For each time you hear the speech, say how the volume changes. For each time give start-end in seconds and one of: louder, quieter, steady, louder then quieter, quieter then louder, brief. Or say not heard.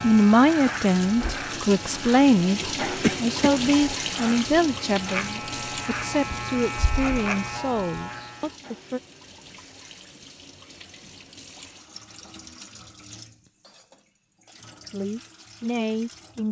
0.0-9.0 quieter
14.9-16.4 brief.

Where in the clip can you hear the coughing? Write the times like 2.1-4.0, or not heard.
2.9-3.5.